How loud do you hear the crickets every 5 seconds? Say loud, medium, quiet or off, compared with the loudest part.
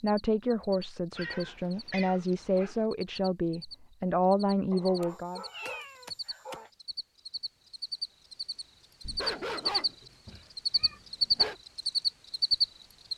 quiet, medium, loud.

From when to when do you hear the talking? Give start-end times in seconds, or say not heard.
0.0-5.4.